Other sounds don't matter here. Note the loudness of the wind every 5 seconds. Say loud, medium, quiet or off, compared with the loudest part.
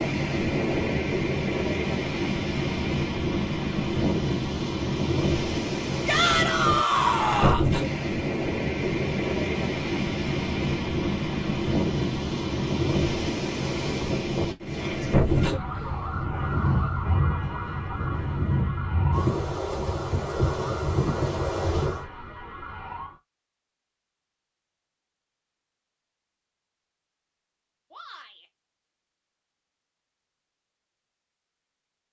loud, loud, loud, loud, loud, off, off.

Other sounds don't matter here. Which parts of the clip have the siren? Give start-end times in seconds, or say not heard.
15.3-23.2.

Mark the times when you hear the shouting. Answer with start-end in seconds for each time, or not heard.
6.0-7.7, 14.7-15.1, 27.9-28.4.